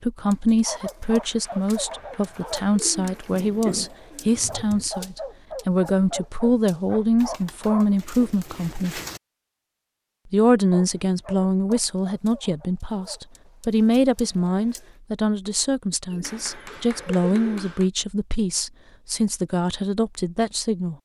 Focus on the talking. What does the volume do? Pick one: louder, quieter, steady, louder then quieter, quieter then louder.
steady.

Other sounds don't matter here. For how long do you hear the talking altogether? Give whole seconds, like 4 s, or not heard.
20 s.